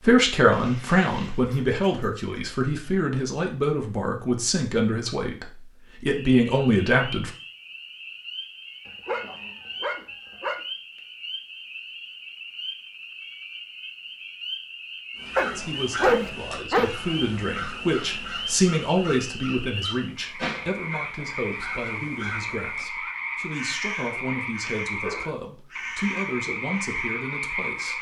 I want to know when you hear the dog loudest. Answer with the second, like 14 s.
16 s.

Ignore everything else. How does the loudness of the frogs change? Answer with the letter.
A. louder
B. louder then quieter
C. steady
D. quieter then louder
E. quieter
A.